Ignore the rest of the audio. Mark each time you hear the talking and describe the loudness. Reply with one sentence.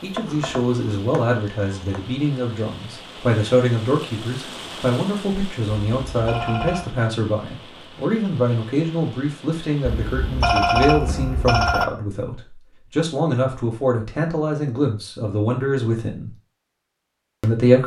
The talking can be heard from 0.0 to 16.3 s, at a steady volume; and briefly from 17.4 to 17.8 s.